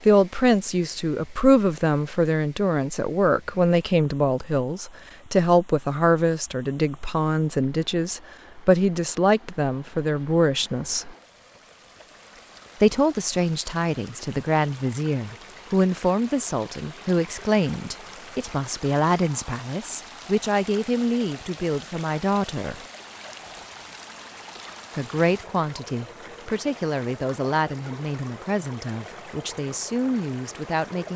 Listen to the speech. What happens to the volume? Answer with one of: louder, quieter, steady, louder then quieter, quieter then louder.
quieter.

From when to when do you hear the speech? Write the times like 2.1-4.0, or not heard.
0.1-11.2, 12.8-22.8, 24.9-31.1.